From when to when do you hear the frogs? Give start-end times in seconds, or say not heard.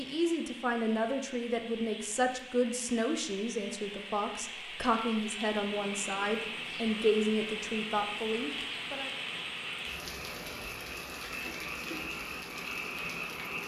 5.7-13.6.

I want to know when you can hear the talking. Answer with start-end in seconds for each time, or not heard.
0.0-9.1.